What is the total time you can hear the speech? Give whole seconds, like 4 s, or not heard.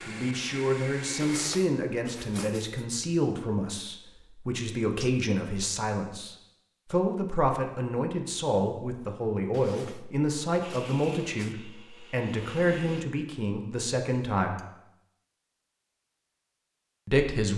15 s.